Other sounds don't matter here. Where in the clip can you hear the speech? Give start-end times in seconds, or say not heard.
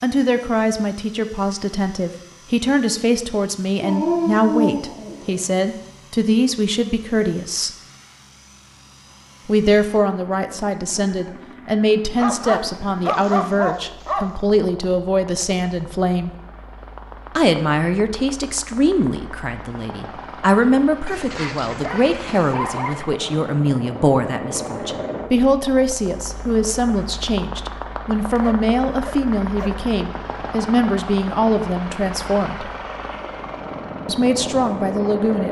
0.0-7.7, 9.4-16.3, 17.4-32.7, 34.0-35.4.